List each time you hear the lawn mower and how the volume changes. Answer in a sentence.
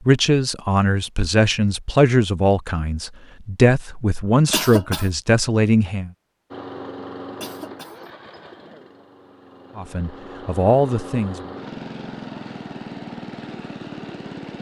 The lawn mower can be heard from 6.5 to 14.5 s, getting quieter then louder.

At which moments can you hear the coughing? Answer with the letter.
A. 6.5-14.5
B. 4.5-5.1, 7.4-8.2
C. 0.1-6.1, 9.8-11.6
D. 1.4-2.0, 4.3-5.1
B.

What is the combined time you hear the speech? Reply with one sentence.
You can hear the speech for 8 seconds altogether.